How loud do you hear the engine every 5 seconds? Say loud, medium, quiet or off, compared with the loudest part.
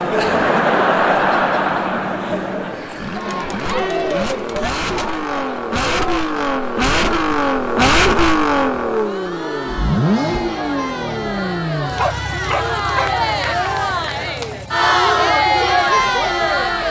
medium, loud, medium, quiet.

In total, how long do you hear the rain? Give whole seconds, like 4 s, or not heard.
not heard.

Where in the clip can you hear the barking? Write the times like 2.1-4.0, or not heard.
11.9-13.6.